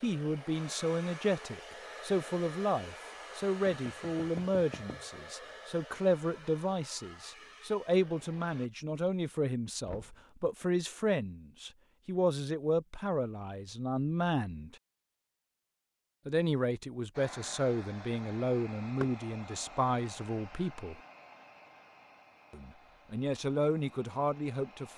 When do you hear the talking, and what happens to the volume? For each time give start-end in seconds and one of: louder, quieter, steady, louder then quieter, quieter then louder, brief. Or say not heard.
0.0-14.8 steady
16.2-21.0 steady
22.5-24.9 brief.